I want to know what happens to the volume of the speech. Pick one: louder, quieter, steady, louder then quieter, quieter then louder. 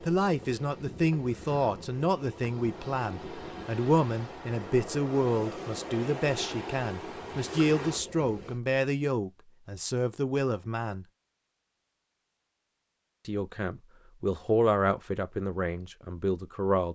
steady.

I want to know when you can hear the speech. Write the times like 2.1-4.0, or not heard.
0.0-11.1, 13.2-16.9.